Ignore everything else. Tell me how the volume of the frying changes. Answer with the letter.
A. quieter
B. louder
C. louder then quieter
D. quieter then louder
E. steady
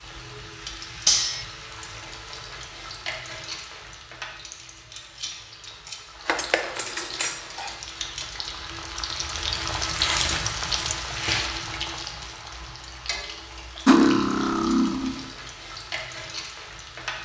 C.